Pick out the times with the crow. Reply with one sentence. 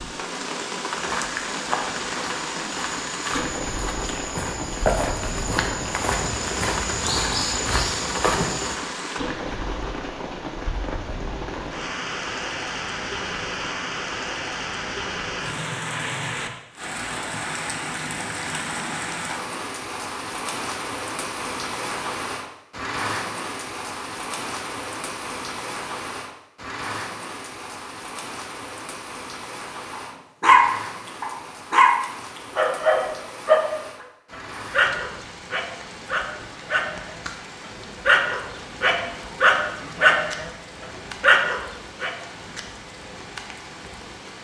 You can't hear the crow here.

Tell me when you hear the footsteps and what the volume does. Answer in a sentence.
You can hear the footsteps from 0.9 to 8.8 s, getting louder.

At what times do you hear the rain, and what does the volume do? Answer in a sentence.
You can hear the rain from 0.0 to 44.4 s, getting quieter.